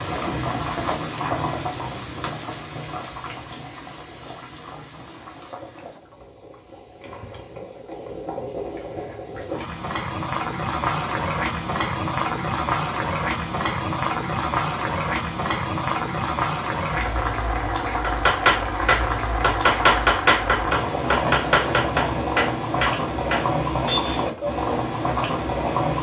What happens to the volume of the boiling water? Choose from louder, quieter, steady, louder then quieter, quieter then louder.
louder.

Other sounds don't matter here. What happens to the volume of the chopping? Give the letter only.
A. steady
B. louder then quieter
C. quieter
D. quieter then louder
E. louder
C.